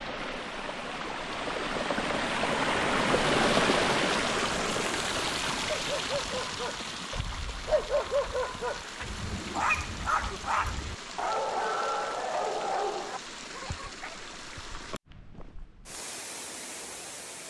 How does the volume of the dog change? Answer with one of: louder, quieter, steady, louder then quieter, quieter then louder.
louder.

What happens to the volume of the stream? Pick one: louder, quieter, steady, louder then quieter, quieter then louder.
quieter.